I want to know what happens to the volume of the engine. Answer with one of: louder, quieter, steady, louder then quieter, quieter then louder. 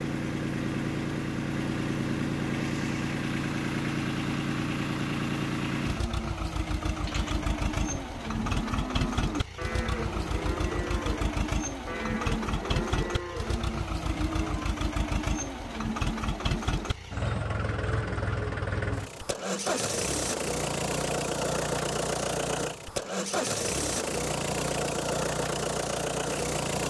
steady.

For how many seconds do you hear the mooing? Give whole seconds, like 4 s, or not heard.
8 s.